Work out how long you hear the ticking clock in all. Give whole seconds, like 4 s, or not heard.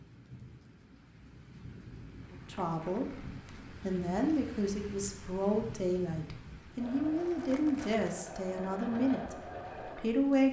not heard.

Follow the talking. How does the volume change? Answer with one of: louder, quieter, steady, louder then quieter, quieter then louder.
steady.